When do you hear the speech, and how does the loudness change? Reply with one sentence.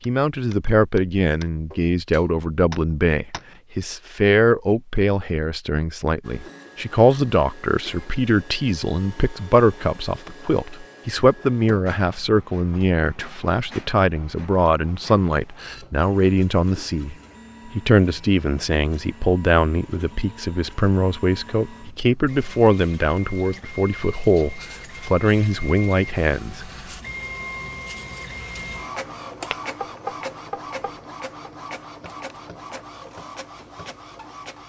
The speech can be heard from 0.1 to 26.7 s, at a steady volume.